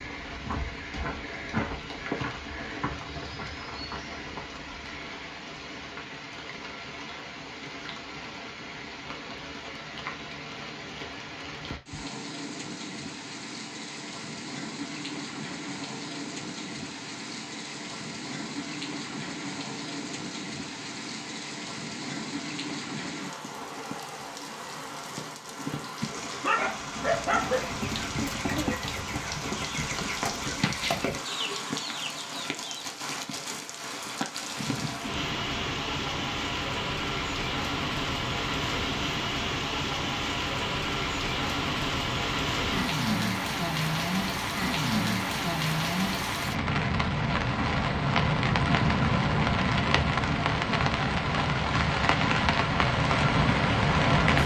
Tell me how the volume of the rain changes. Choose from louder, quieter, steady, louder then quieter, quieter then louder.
louder.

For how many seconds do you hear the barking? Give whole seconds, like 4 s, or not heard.
2 s.